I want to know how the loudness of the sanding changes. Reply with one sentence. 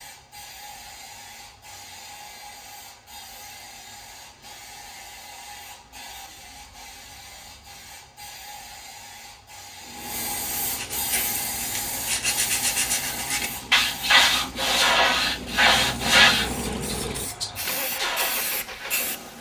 The volume of the sanding goes up, then down.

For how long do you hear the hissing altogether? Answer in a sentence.
You can hear the hissing for 19 seconds altogether.